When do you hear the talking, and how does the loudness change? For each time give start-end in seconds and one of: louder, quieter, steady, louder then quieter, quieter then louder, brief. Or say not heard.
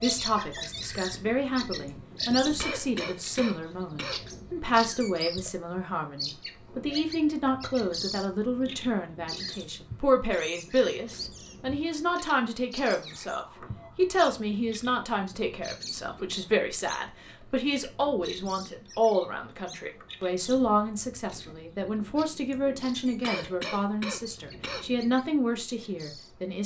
0.0-26.6 steady.